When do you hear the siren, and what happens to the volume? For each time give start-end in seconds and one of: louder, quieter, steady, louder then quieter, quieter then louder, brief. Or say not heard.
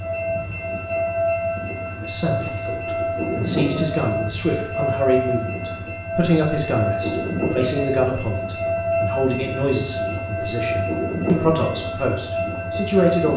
0.0-13.3 steady.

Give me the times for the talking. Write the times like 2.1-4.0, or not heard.
1.9-13.3.